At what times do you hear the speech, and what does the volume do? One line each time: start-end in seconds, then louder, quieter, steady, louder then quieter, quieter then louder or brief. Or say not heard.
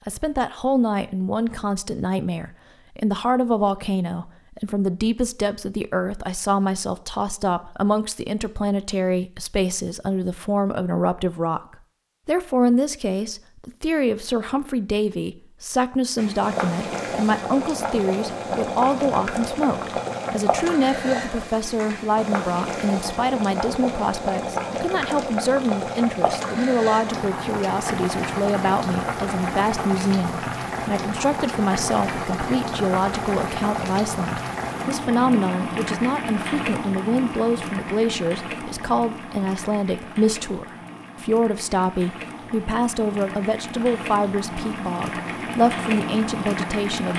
0.1-11.6 steady
12.2-47.1 steady.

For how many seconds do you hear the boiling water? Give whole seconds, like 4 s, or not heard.
31 s.